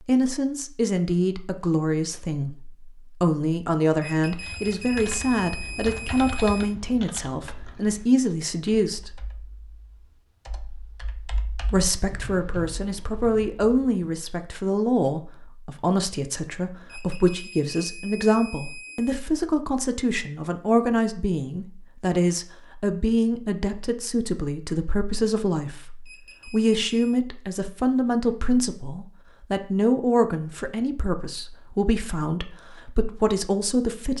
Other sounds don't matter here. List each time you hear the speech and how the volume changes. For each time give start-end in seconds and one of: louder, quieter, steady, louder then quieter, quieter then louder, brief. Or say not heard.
0.1-9.2 steady
11.7-34.1 steady.